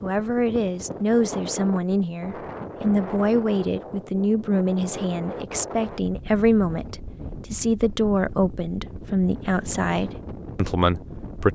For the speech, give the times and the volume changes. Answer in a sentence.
You can hear the speech from 0.0 to 11.5 s, at a steady volume.